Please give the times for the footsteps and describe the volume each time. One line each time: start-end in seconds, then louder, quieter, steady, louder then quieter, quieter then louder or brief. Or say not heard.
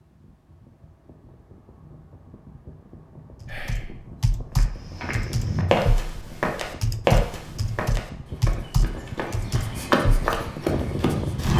4.5-11.5 quieter then louder.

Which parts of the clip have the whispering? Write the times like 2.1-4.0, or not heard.
3.5-4.0.